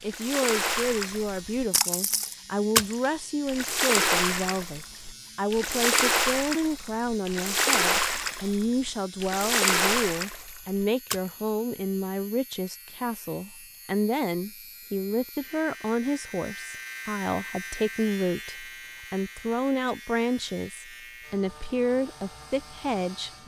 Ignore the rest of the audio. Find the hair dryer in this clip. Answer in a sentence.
You can't hear the hair dryer here.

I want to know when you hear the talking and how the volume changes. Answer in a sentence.
You can hear the talking from 0.0 to 23.4 s, at a steady volume.